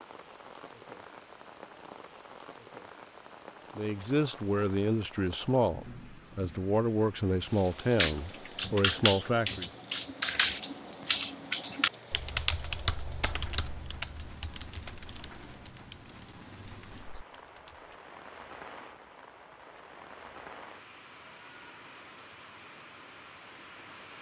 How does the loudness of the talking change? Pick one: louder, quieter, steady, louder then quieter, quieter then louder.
steady.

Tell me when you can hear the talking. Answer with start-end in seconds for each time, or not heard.
3.8-9.7.